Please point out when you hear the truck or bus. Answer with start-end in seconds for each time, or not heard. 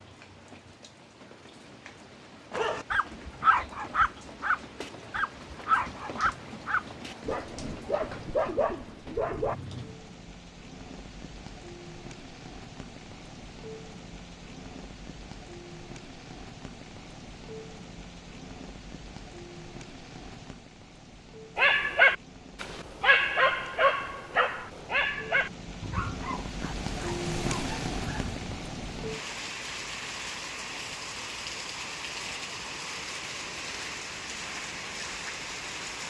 not heard.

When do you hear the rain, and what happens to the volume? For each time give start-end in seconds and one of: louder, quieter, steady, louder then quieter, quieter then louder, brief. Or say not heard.
0.0-36.0 louder.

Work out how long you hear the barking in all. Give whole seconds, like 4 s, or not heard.
14 s.